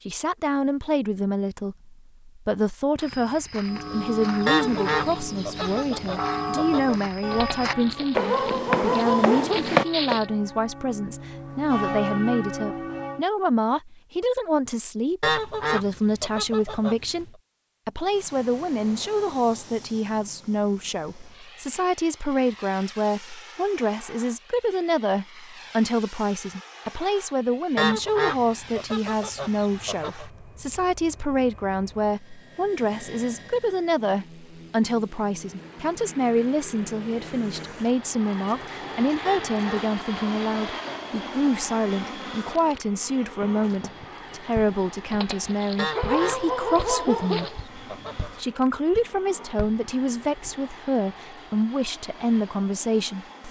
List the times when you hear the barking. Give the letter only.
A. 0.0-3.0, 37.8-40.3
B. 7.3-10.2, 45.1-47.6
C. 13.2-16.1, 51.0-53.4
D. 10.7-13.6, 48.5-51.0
B.